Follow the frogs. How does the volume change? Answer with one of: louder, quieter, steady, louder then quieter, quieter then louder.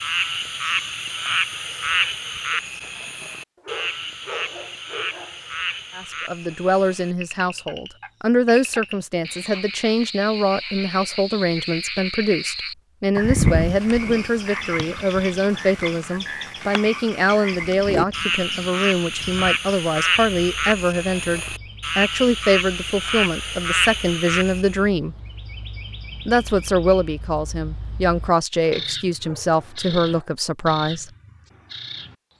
quieter then louder.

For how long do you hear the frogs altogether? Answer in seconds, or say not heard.
25 s.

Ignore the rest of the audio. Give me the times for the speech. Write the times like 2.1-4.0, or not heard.
6.0-25.1, 26.2-31.1.